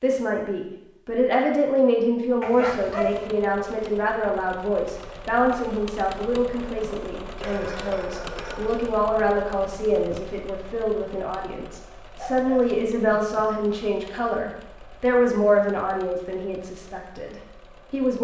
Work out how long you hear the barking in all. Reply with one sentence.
The barking can be heard for 4 seconds in total.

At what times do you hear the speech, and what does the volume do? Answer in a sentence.
You can hear the speech from 0.0 to 18.1 s, at a steady volume.